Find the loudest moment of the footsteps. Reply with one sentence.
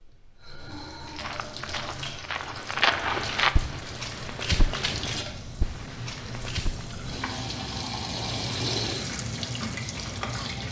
The volume of the footsteps peaks at 3 seconds.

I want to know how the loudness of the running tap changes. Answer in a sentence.
The volume of the running tap goes up.